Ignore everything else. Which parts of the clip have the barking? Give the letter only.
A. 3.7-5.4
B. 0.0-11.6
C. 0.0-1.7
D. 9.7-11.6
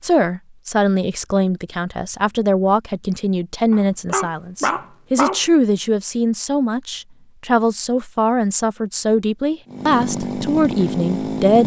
A.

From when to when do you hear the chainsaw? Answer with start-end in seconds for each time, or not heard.
9.7-11.6.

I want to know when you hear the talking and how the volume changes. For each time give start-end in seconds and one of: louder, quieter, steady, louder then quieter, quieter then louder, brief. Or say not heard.
0.0-11.6 steady.